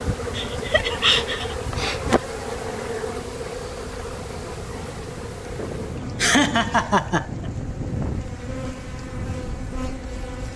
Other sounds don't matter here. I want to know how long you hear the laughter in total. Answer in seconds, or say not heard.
3 s.